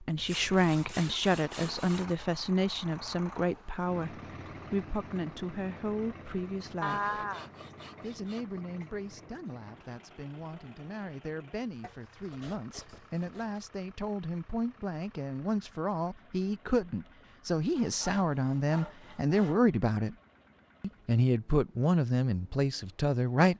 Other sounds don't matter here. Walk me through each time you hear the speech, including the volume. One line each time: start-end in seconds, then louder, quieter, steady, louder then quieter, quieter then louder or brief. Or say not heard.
0.0-7.2 quieter
8.0-20.1 louder
20.8-23.5 brief.